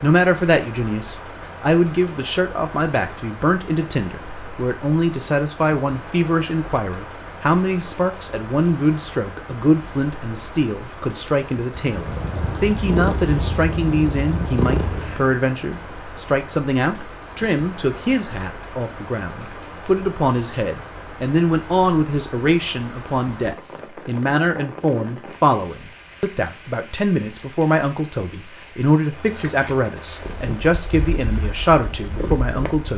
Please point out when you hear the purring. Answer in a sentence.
The purring can be heard from 11.8 to 15.4 s and from 30.1 to 32.9 s.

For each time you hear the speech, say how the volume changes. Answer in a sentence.
The speech can be heard from 0.0 to 32.9 s, at a steady volume.